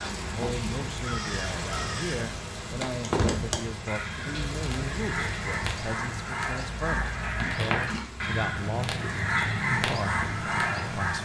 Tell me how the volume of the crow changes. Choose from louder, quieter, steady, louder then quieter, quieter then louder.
louder.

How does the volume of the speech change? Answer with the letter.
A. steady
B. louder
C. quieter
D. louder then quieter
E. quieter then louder
A.